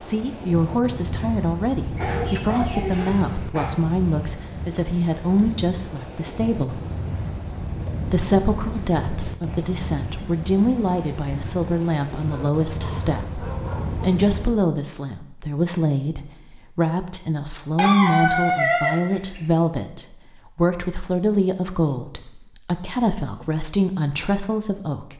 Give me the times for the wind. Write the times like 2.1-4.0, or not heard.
0.0-14.6.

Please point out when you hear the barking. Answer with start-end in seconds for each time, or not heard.
1.9-3.7, 12.2-14.1, 17.8-19.4.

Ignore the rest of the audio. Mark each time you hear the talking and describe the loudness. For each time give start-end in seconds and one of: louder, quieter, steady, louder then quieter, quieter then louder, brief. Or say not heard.
0.0-6.8 steady
8.1-25.1 steady.